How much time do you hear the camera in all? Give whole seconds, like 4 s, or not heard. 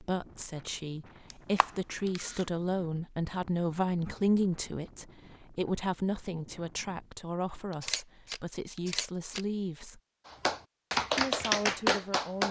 3 s.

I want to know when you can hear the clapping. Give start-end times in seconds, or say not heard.
10.2-12.4.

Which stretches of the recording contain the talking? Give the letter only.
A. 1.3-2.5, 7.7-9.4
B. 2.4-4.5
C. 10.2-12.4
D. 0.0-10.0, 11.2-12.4
D.